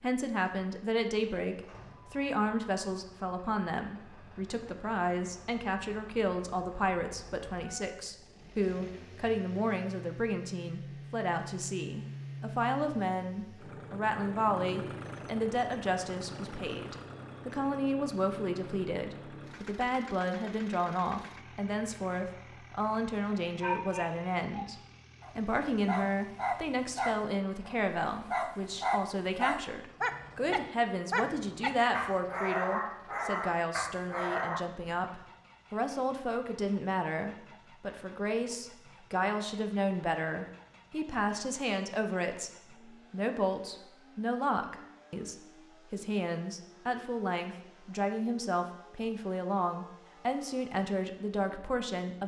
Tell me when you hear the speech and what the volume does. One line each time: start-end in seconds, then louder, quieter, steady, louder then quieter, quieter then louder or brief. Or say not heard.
0.0-52.2 steady.